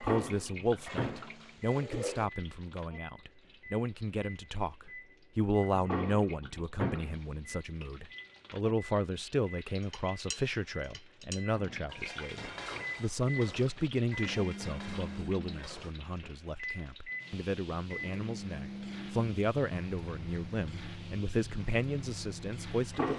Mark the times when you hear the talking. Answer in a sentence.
You can hear the talking from 0.0 to 23.1 s.